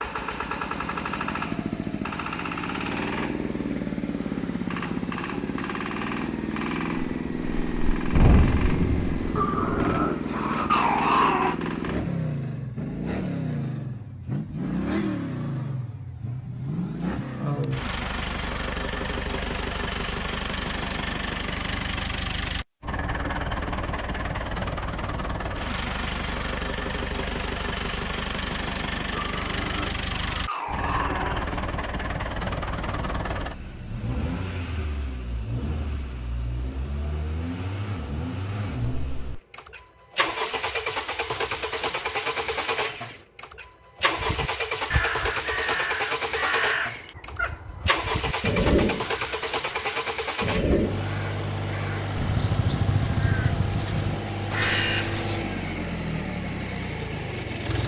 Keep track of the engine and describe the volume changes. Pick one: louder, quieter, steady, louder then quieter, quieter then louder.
steady.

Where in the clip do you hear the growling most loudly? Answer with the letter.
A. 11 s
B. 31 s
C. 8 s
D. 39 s
A.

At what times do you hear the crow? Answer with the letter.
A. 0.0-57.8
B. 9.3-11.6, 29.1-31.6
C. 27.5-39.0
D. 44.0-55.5
D.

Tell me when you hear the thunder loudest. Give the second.
8 s.